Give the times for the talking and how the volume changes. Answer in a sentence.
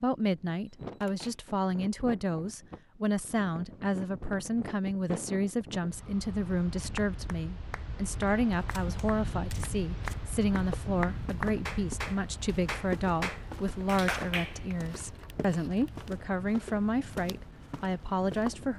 The talking can be heard from 0.0 to 18.7 s, at a steady volume.